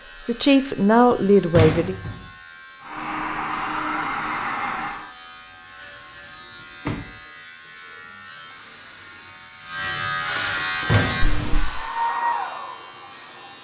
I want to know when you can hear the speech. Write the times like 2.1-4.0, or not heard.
0.2-1.9.